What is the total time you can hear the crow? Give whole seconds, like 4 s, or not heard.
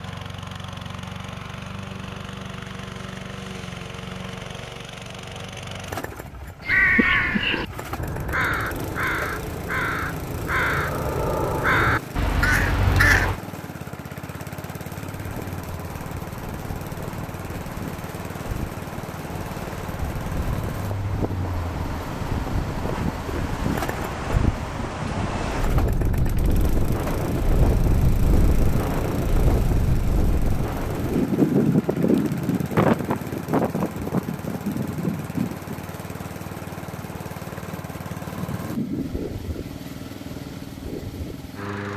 7 s.